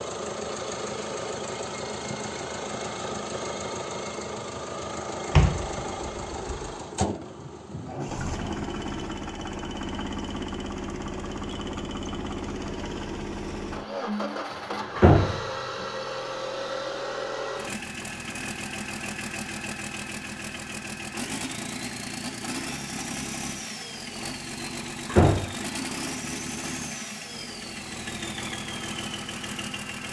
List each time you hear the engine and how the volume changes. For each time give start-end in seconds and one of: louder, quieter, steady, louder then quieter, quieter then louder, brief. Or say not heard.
0.0-30.0 steady.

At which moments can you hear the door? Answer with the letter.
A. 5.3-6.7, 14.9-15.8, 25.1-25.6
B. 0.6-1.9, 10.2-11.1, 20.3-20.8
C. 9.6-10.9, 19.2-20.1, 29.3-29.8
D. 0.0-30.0
A.